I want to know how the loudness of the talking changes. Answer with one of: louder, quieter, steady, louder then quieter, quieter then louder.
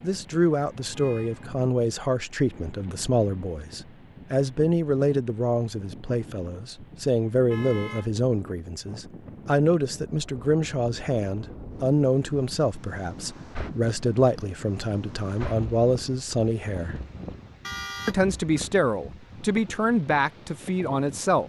steady.